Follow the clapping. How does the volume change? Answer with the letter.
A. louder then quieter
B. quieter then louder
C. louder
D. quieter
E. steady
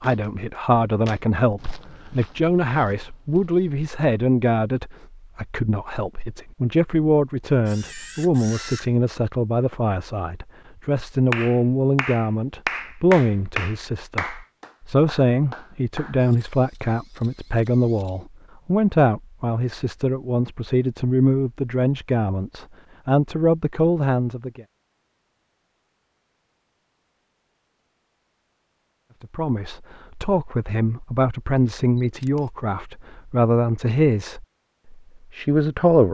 A.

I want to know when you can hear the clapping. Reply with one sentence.
The clapping can be heard from 11.3 to 16.2 s.